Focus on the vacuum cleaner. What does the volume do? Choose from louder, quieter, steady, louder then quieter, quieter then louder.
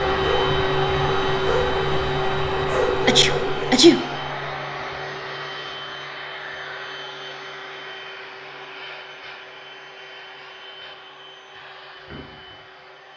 quieter.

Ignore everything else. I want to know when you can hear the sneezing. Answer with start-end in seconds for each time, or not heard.
3.0-4.0.